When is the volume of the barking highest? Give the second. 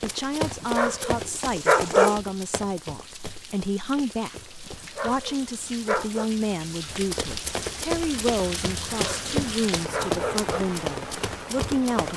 2 s.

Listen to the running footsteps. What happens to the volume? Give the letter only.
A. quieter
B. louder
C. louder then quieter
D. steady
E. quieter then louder
E.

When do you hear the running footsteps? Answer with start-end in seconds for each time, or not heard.
0.0-5.3, 6.8-12.1.